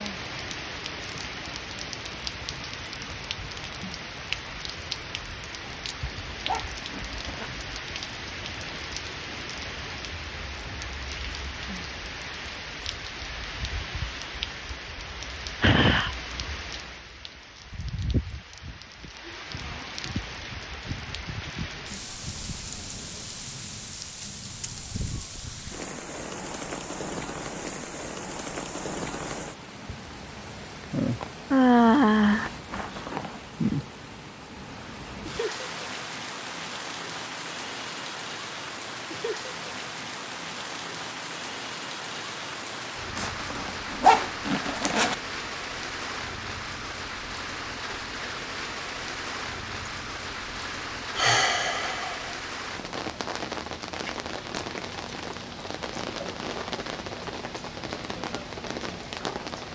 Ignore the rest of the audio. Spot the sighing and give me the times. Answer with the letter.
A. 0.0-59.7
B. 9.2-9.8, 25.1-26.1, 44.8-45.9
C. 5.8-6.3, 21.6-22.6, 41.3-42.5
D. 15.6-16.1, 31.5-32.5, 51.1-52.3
D.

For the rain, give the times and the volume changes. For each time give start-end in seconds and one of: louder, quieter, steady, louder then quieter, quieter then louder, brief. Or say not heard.
0.0-59.7 steady.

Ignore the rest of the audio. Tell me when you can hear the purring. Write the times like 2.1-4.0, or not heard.
not heard.